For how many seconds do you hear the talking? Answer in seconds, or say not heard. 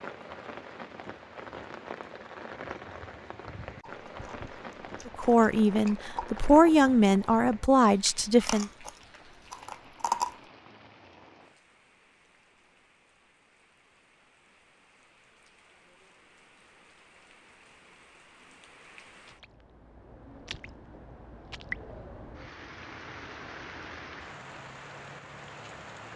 4 s.